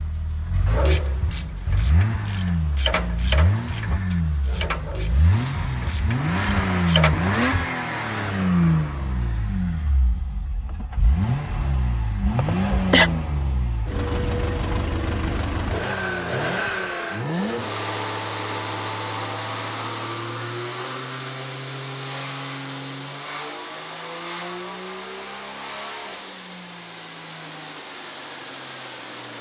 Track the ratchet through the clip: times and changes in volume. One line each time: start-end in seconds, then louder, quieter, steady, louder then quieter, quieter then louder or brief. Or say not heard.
0.7-7.2 louder then quieter.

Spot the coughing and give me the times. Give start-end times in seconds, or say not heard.
12.3-13.1.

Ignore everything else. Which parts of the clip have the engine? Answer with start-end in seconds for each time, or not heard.
0.0-29.3.